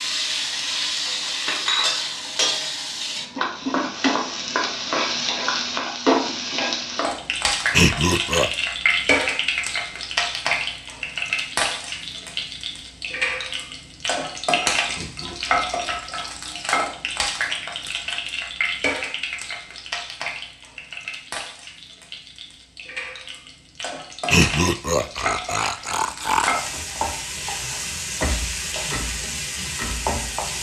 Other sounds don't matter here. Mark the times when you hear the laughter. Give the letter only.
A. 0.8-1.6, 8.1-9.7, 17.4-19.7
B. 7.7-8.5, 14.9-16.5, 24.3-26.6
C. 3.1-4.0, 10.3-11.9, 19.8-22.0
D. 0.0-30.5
B.